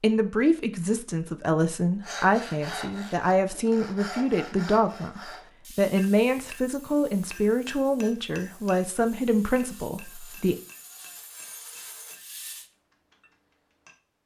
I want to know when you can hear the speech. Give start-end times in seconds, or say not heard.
0.0-10.6.